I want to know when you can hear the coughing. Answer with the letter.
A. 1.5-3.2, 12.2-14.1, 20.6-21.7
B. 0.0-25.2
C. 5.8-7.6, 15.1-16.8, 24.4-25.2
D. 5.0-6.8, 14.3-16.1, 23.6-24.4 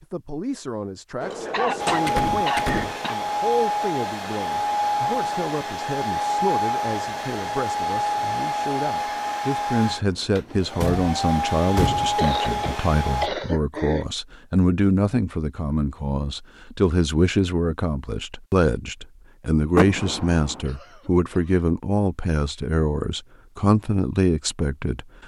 A.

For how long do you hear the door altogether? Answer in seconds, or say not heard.
4 s.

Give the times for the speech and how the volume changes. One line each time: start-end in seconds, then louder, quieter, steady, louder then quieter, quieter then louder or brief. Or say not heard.
0.0-25.2 louder.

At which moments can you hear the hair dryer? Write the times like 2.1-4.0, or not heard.
1.8-13.3.